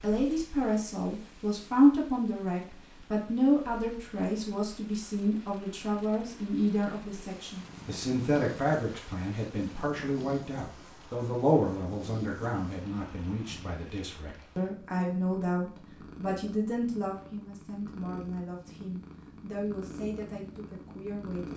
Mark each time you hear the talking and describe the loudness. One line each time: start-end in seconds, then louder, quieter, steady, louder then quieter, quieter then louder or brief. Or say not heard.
0.0-21.5 quieter.